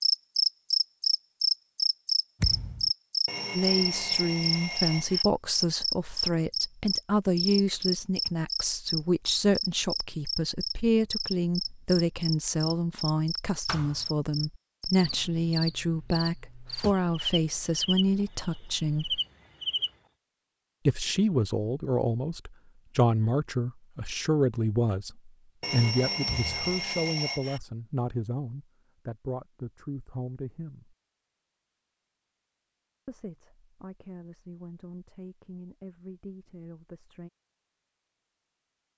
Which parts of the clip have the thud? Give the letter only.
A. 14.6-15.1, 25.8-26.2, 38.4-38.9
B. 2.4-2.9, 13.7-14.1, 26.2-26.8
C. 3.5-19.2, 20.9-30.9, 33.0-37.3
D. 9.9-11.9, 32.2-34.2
B.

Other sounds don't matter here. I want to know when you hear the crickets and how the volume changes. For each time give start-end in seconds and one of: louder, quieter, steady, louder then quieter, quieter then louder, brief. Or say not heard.
0.0-19.9 quieter.